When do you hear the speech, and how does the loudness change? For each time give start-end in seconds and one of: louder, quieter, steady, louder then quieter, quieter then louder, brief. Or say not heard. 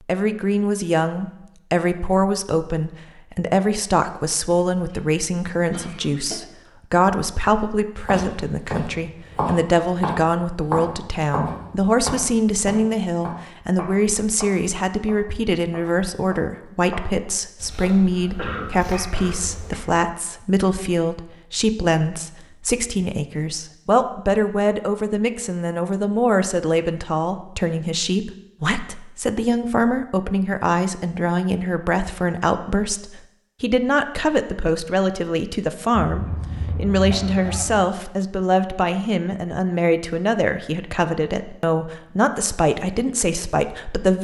0.1-44.1 steady.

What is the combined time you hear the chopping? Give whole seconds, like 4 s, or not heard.
12 s.